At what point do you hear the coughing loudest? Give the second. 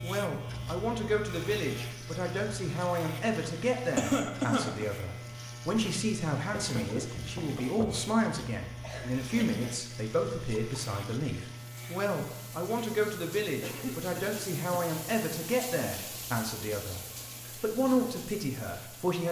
4 s.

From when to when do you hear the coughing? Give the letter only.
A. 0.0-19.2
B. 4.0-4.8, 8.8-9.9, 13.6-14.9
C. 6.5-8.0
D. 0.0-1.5
B.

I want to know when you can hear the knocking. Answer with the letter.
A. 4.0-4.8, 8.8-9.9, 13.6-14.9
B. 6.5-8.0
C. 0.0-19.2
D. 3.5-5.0
B.